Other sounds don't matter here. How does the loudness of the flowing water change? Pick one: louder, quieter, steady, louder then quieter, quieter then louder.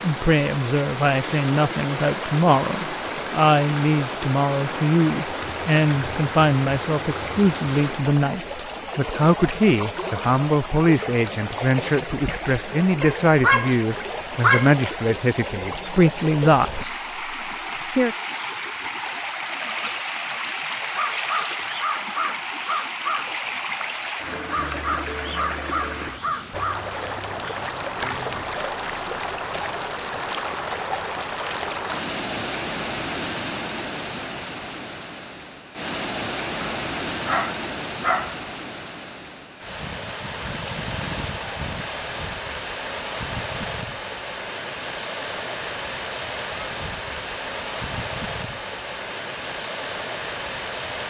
steady.